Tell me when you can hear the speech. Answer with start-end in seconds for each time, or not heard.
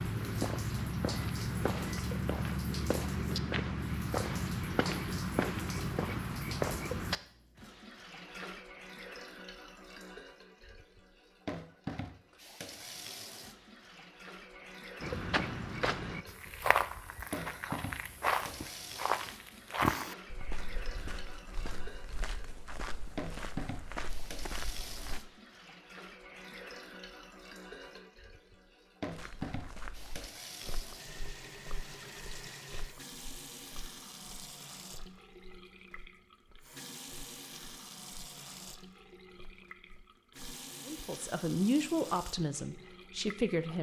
40.9-43.7.